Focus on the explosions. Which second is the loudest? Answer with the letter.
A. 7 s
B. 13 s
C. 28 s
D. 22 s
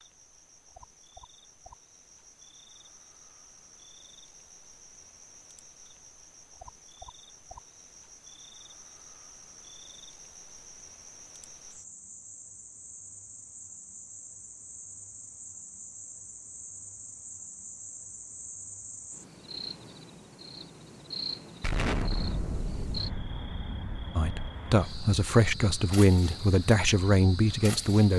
D.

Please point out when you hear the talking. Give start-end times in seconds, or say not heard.
24.1-28.1.